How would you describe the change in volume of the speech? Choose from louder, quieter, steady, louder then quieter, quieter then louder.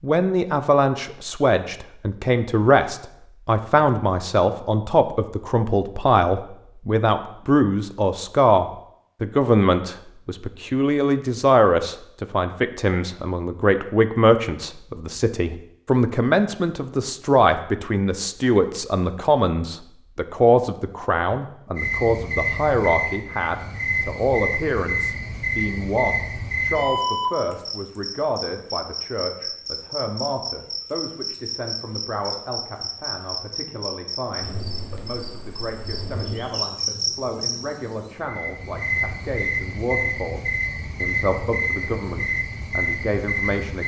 quieter.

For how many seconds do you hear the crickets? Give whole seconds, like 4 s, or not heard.
22 s.